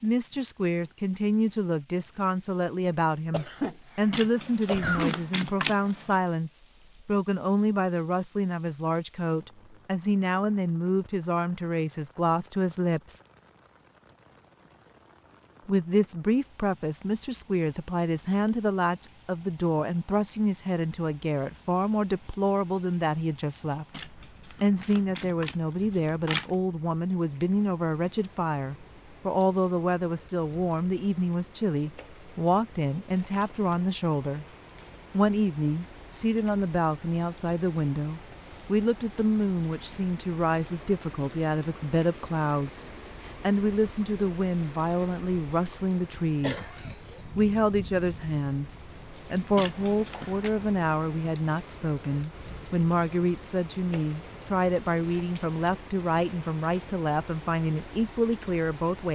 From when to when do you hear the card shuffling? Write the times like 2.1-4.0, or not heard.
4.1-6.2, 23.9-26.6, 49.5-50.5.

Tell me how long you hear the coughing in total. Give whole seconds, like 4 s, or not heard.
3 s.